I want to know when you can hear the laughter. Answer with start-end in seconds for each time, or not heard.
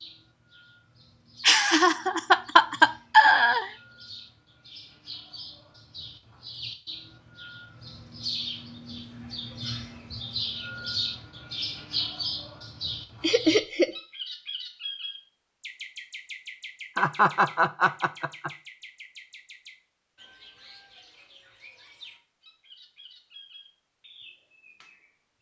1.4-3.7, 13.2-13.9, 16.9-18.5.